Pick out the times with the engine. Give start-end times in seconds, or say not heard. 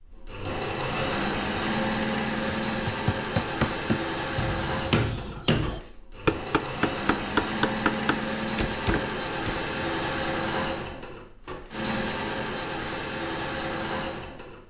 0.0-14.6.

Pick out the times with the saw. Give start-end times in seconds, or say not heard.
not heard.